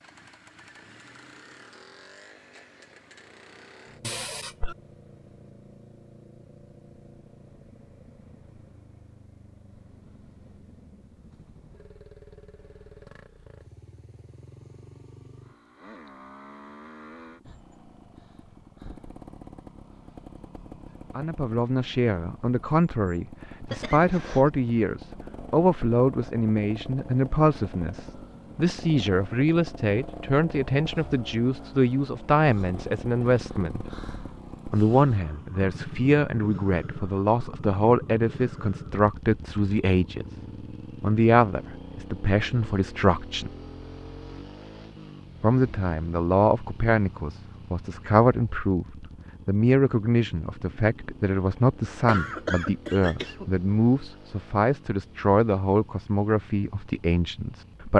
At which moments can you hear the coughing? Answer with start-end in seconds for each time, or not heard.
4.0-4.8, 23.6-24.5, 52.0-53.5.